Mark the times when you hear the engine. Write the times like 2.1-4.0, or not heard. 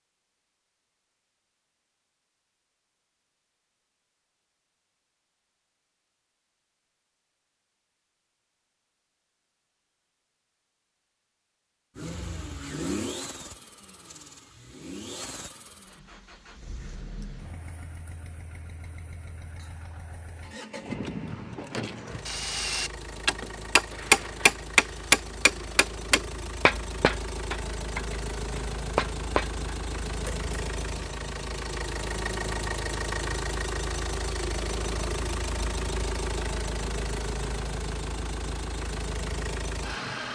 11.9-40.3.